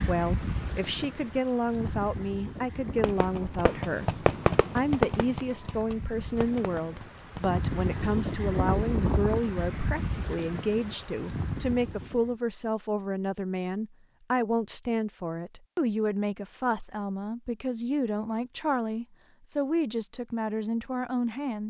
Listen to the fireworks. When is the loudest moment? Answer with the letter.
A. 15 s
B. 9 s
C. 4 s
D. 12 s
C.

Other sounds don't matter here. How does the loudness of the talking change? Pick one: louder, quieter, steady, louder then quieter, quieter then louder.
steady.